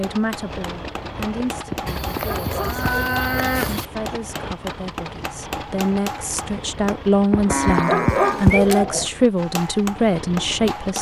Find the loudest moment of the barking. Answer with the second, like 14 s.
8 s.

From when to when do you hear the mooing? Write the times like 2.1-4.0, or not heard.
1.9-3.9, 7.5-8.8.